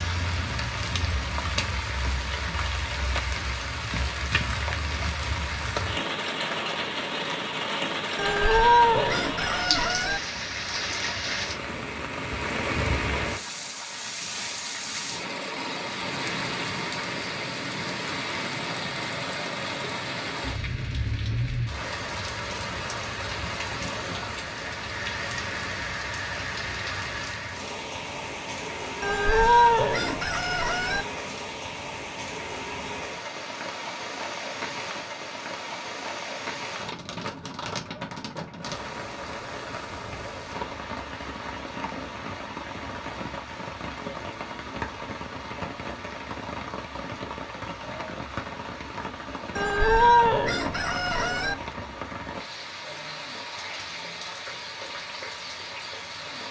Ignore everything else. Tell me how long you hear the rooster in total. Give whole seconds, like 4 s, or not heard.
6 s.